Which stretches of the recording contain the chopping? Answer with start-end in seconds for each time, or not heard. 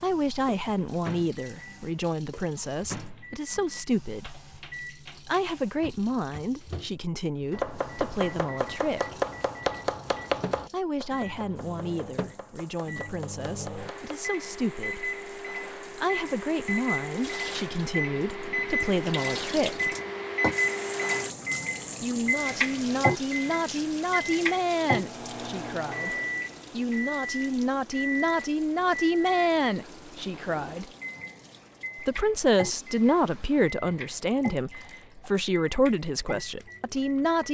7.5-14.2.